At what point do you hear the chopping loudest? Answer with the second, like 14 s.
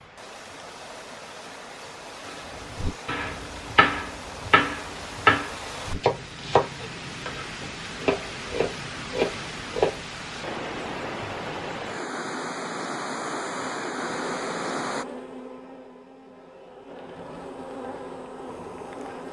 5 s.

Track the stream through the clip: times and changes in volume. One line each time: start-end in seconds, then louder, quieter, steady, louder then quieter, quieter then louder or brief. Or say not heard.
0.0-15.1 louder.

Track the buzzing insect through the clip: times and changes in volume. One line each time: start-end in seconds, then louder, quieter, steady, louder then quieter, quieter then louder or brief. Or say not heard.
14.0-19.2 quieter then louder.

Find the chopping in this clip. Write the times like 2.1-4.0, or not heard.
2.8-10.0.